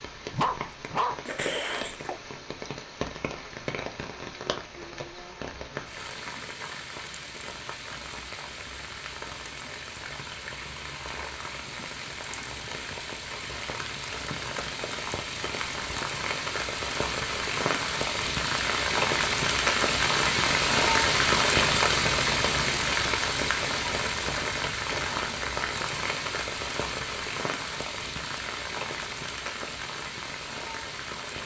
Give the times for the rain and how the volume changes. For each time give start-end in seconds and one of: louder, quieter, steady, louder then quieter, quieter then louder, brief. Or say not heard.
0.0-31.4 louder then quieter.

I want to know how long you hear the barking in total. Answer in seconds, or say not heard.
2 s.